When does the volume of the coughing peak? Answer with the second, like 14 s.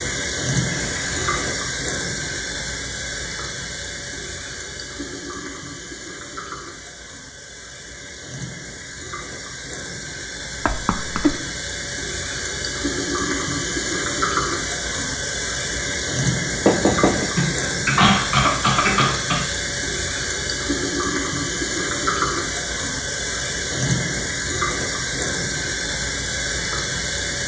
18 s.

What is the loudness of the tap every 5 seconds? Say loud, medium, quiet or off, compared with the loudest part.
loud, medium, loud, loud, loud, loud.